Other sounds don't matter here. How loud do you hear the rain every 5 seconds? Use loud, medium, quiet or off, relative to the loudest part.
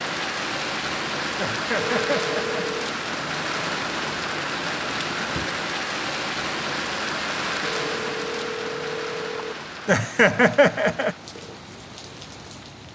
loud, loud, quiet.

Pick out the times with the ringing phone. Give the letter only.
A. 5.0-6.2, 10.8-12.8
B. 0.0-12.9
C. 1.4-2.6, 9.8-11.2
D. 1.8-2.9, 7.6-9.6
D.